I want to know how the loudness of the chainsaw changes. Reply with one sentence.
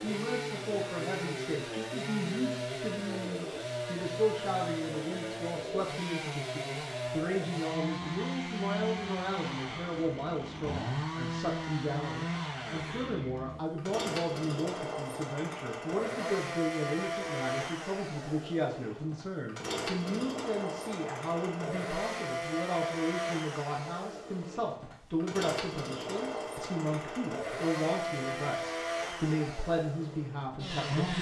The loudness of the chainsaw stays about the same.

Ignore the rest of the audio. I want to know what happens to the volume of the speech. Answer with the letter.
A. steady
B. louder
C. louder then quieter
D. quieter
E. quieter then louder
A.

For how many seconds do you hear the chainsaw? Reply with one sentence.
You can hear the chainsaw for 31 seconds altogether.